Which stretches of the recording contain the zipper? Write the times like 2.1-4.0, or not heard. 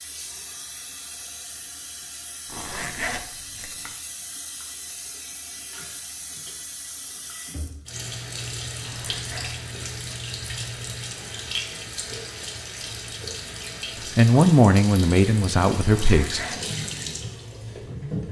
2.5-4.0, 8.8-9.6, 15.8-16.6.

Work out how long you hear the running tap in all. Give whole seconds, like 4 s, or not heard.
18 s.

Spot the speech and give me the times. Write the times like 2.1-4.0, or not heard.
14.2-16.4.